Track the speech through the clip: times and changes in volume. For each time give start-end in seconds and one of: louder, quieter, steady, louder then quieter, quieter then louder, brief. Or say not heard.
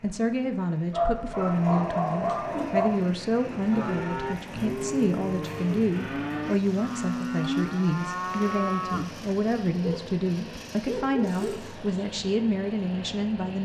0.0-13.6 steady.